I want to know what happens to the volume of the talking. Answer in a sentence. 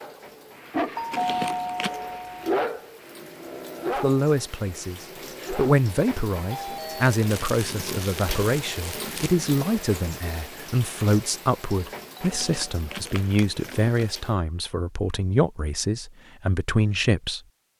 The loudness of the talking stays about the same.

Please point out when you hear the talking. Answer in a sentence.
The talking can be heard from 3.9 to 17.4 s.